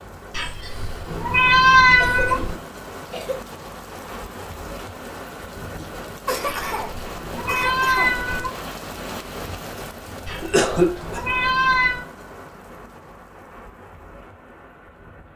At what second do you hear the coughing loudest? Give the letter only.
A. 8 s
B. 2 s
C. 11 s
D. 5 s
C.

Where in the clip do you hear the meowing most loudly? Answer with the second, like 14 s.
2 s.